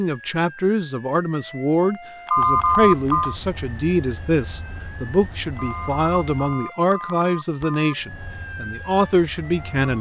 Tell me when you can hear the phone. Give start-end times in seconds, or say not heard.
2.2-3.4, 5.5-8.0.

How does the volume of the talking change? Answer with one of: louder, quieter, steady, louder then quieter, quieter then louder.
steady.